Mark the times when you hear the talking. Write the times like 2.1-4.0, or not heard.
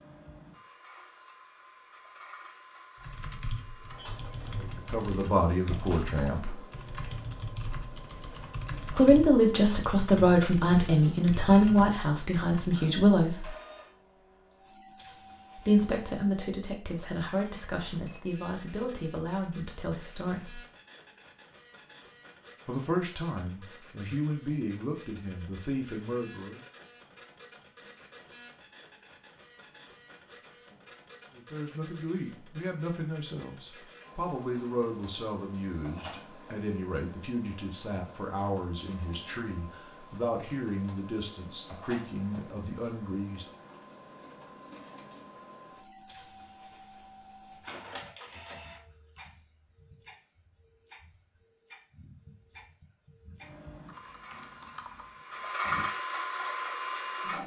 4.5-6.7, 8.9-13.6, 15.6-20.6, 22.6-26.6, 31.4-43.5.